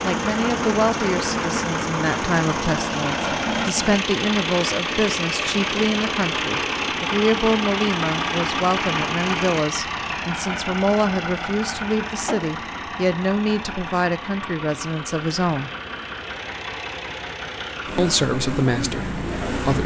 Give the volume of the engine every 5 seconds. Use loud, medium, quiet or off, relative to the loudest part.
loud, loud, medium, medium.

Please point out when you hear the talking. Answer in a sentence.
The talking can be heard from 0.0 to 15.7 s and from 17.9 to 19.8 s.